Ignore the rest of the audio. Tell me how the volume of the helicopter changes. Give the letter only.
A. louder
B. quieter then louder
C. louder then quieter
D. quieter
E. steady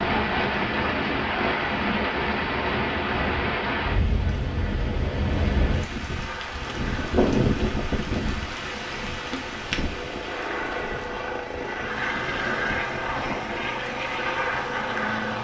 A.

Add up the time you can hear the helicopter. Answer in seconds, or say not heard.
9 s.